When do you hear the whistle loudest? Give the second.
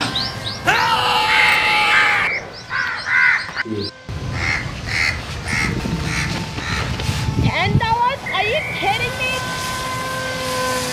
2 s.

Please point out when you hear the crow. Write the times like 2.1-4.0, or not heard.
0.0-7.3.